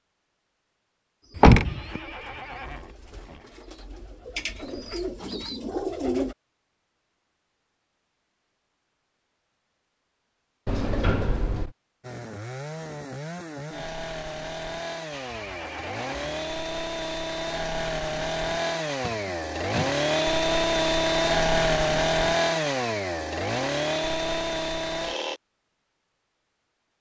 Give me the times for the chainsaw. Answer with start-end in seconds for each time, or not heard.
12.0-25.4.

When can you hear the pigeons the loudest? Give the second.
6 s.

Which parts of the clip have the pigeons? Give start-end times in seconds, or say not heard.
1.2-6.3.